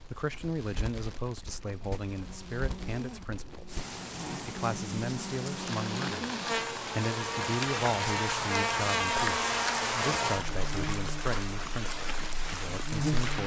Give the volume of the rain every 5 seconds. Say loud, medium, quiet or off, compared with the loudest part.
medium, loud, loud.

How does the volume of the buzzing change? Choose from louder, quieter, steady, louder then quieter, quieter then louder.
louder then quieter.